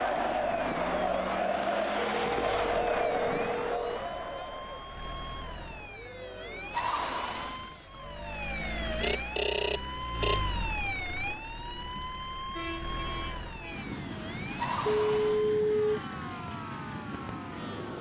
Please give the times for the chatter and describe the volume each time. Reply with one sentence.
You can hear the chatter from 0.0 to 9.4 s, getting quieter.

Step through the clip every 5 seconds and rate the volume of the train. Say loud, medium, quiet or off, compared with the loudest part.
off, off, loud, loud.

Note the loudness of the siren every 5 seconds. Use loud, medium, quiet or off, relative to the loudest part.
medium, loud, loud, medium.